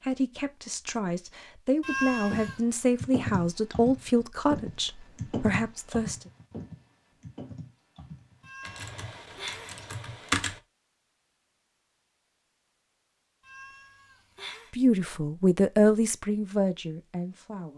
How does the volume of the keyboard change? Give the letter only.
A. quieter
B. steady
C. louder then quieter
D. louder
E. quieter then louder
A.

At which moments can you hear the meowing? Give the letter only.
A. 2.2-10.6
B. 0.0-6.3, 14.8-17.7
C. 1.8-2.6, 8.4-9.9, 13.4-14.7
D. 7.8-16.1
C.